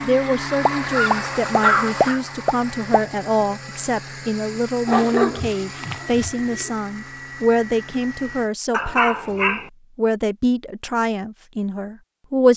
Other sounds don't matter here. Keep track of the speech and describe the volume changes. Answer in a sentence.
The loudness of the speech stays about the same.